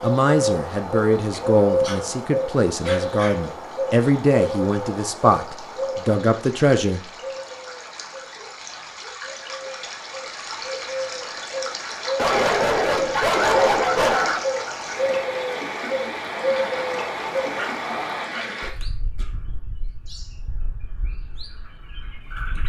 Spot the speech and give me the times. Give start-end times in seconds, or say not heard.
0.0-7.0.